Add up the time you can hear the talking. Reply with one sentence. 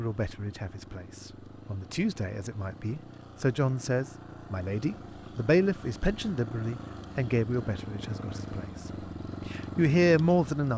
The talking can be heard for 10 seconds in total.